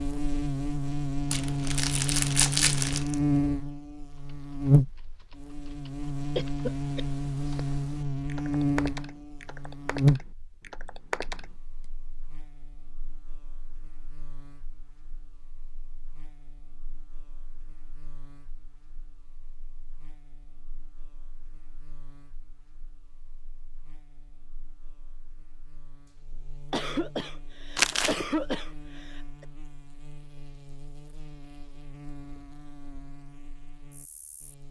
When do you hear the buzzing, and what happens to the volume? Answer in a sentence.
You can hear the buzzing from 0.0 to 34.6 s, getting quieter then louder.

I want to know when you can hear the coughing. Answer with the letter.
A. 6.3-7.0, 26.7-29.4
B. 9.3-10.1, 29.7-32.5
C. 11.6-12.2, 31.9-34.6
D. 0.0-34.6
A.